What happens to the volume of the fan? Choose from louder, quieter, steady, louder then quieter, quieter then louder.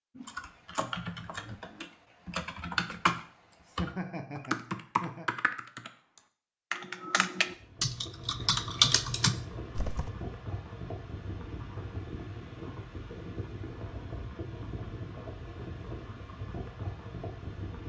steady.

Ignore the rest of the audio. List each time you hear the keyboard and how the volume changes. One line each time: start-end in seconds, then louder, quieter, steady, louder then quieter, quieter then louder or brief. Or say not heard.
0.1-10.1 louder.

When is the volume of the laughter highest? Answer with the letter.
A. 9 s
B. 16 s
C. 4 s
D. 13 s
C.